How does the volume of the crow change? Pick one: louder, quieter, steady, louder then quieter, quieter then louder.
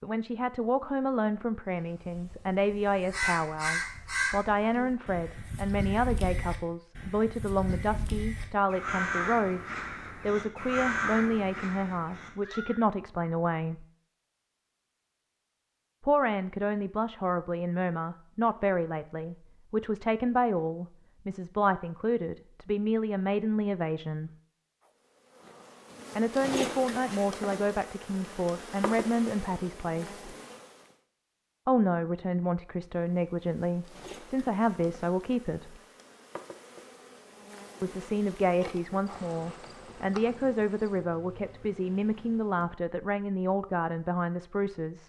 quieter then louder.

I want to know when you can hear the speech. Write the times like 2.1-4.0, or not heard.
0.0-13.8, 16.0-24.3, 26.1-30.2, 31.6-35.8, 37.8-45.0.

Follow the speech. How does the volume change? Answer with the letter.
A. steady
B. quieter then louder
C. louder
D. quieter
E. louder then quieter
A.